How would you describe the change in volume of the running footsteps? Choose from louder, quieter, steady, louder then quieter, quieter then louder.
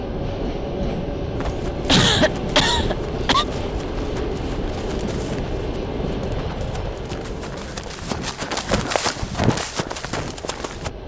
louder.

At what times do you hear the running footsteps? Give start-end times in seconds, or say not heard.
1.4-10.9.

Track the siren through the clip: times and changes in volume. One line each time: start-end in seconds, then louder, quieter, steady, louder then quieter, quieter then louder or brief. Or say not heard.
not heard.